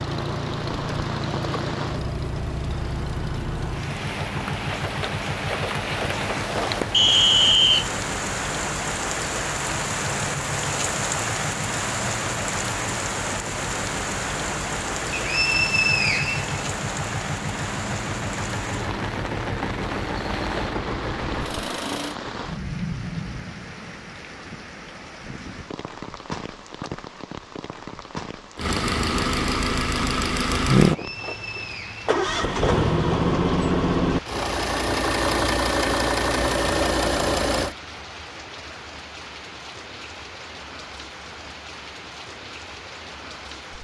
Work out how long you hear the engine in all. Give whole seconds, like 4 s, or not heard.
31 s.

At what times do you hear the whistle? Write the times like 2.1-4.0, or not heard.
6.9-7.9, 15.1-16.6, 31.0-32.0.